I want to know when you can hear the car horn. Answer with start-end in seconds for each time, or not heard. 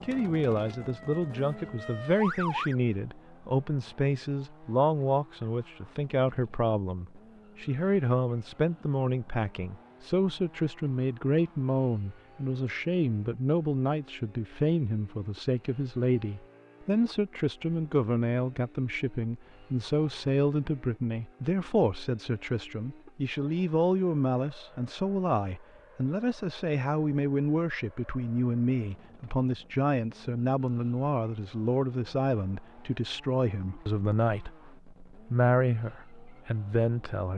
not heard.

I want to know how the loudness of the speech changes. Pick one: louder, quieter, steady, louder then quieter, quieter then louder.
steady.